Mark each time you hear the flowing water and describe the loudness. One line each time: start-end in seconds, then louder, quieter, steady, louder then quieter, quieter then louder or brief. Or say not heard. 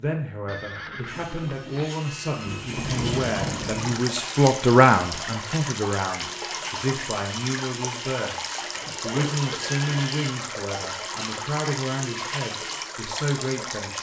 2.7-13.9 steady.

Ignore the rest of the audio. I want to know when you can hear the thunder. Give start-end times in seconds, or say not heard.
2.4-4.0.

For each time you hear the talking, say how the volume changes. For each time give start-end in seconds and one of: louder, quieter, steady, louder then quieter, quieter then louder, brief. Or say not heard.
0.0-13.9 louder then quieter.